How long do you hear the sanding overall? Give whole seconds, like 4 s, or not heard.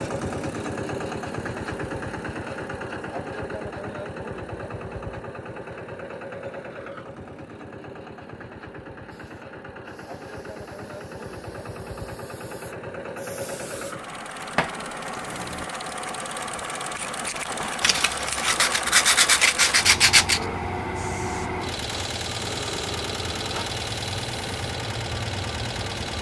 3 s.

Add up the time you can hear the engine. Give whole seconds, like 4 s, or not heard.
26 s.